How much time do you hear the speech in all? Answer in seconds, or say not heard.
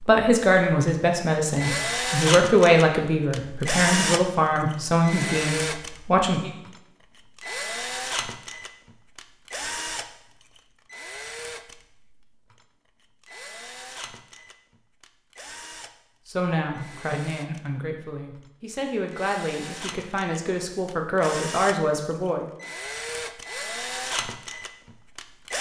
13 s.